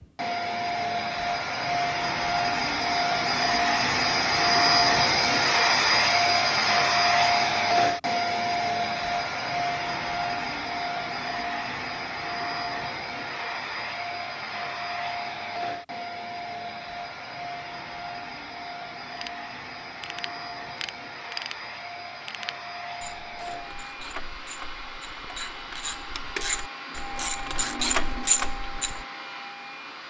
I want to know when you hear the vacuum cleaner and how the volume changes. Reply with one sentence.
You can hear the vacuum cleaner from 0.0 to 30.0 s, getting quieter.